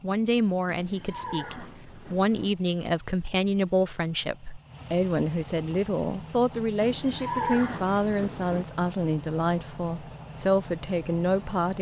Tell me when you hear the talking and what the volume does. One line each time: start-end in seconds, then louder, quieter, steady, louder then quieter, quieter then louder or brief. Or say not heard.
0.0-11.7 steady.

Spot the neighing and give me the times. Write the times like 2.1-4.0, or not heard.
0.7-2.5, 6.8-8.7.